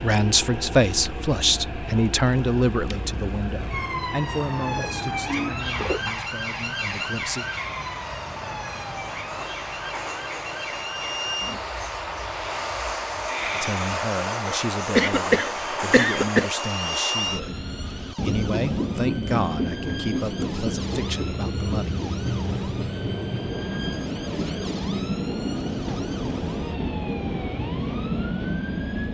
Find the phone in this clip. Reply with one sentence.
The phone can't be heard in this clip.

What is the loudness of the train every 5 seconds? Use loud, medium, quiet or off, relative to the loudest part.
medium, medium, loud, loud, loud, loud.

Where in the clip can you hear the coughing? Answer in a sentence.
The coughing can be heard from 14.4 to 16.5 s.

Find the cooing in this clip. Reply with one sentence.
You can hear the cooing from 4.8 to 6.2 s.